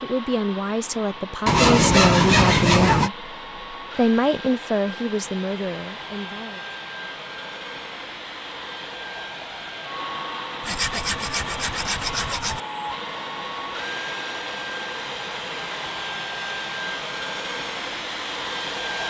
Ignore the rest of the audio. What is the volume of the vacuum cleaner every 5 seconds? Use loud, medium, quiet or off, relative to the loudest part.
medium, medium, loud, loud.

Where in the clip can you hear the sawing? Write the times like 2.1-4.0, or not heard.
1.4-3.1, 10.6-12.6.